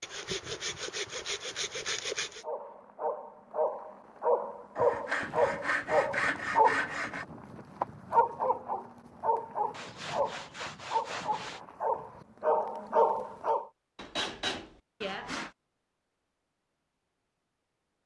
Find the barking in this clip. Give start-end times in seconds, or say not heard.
2.4-13.7.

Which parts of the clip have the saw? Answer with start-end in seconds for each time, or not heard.
0.0-2.5, 4.8-7.2, 9.7-11.6, 13.9-15.5.